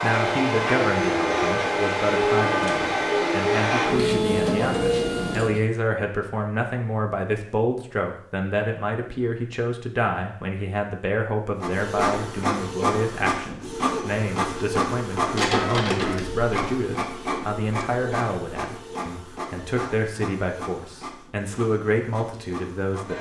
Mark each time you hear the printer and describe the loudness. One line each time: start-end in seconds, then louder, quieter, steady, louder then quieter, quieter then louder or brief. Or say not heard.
0.0-5.6 steady
11.6-23.1 quieter.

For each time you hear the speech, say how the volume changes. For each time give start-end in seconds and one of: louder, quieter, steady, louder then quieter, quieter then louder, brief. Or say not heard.
0.0-23.1 steady.